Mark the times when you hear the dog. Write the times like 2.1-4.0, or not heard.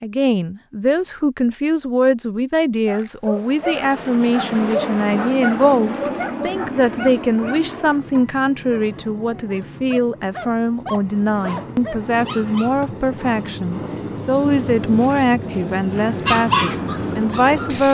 2.9-12.8, 16.2-17.8.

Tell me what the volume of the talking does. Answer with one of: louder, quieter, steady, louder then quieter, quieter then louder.
steady.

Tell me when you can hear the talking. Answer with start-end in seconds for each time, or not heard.
0.0-17.8.